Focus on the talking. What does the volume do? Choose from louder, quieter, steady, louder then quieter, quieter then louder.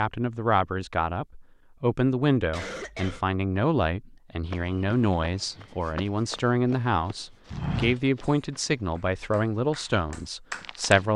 steady.